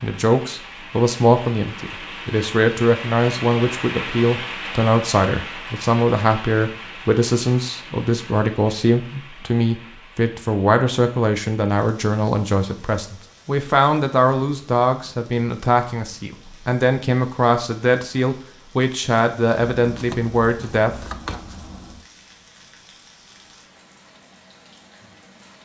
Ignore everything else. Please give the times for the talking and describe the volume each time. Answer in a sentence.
You can hear the talking from 0.0 to 21.4 s, at a steady volume.